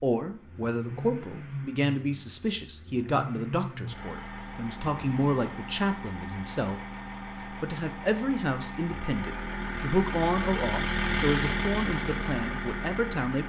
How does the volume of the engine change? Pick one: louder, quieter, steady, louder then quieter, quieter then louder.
louder.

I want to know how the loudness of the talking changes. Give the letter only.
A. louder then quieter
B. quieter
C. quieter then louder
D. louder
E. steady
E.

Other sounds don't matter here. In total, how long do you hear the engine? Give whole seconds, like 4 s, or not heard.
13 s.